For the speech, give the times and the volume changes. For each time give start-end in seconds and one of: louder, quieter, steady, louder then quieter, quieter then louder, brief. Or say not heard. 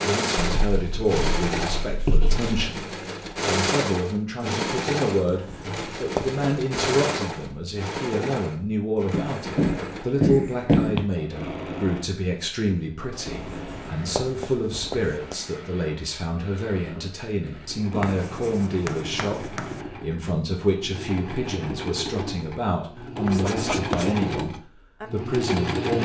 0.0-26.0 steady.